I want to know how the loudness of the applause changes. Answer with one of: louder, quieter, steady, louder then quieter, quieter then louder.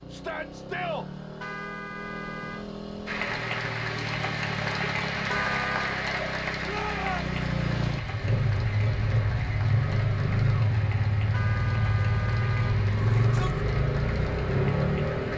quieter.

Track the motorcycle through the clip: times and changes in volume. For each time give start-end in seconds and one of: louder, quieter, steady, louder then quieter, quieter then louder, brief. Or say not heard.
0.0-15.3 louder.